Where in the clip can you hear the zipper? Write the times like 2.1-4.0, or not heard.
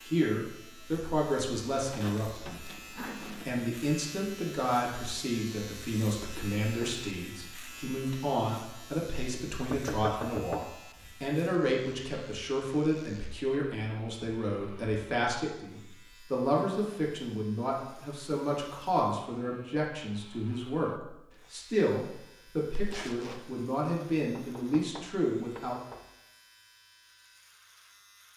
2.0-3.5, 22.7-23.6.